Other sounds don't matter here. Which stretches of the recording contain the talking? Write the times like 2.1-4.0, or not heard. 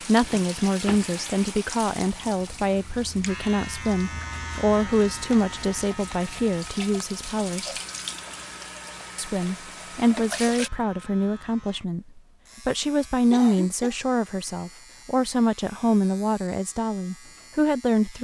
0.1-7.8, 9.2-18.1.